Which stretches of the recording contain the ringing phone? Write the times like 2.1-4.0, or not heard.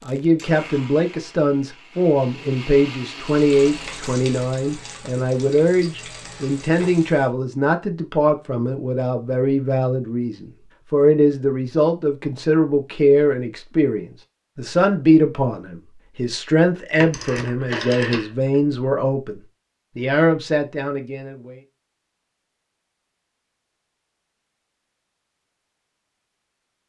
17.0-18.6.